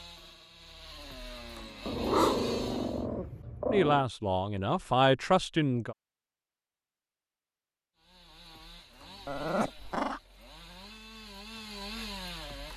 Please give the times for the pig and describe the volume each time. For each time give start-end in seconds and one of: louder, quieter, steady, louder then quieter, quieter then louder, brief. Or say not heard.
not heard.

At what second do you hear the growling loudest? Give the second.
2 s.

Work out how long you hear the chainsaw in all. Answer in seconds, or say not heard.
8 s.